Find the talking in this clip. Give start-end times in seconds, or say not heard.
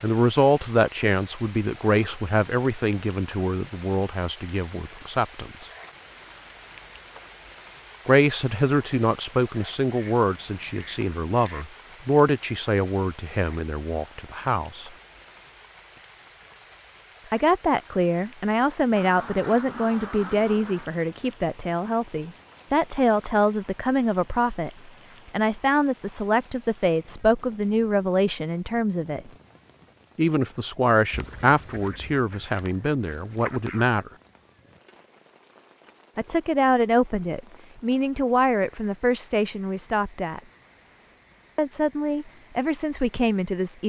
0.0-5.7, 8.1-14.9, 17.3-29.3, 30.1-34.1, 36.1-40.4, 41.5-43.8.